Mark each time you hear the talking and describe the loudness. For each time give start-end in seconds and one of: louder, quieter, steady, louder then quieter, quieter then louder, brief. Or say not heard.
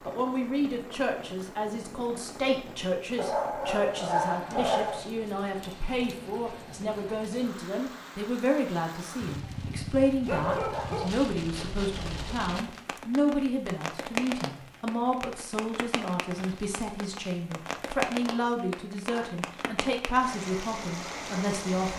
0.1-21.9 steady.